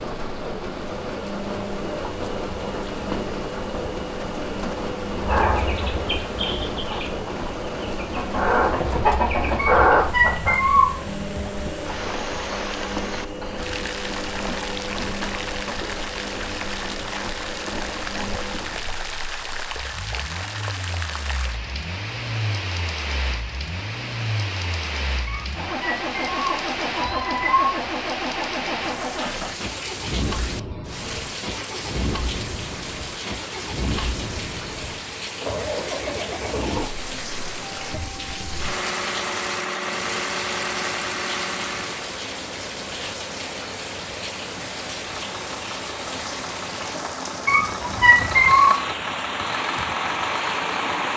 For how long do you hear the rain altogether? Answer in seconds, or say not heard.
51 s.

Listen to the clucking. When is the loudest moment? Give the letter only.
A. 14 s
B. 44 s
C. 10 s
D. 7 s
C.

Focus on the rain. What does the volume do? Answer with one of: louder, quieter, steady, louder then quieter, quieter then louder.
steady.